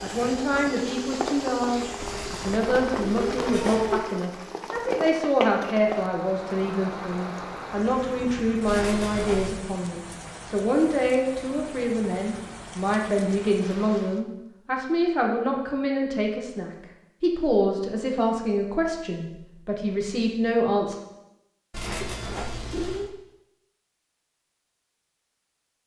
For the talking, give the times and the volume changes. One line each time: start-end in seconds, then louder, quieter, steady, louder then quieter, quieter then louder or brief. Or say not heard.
0.0-20.9 steady.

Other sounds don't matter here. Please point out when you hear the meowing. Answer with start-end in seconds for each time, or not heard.
1.9-4.0, 8.7-9.7, 21.7-23.1.